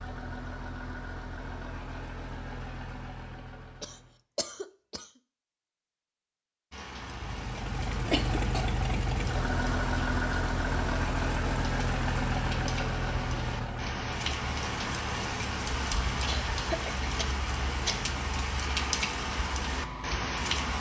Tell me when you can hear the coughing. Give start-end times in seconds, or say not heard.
3.8-5.1, 8.1-8.7, 16.2-18.1.